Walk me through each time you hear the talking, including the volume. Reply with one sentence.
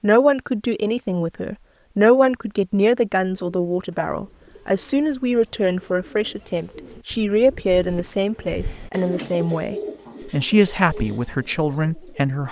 The talking can be heard from 0.0 to 12.4 s, at a steady volume.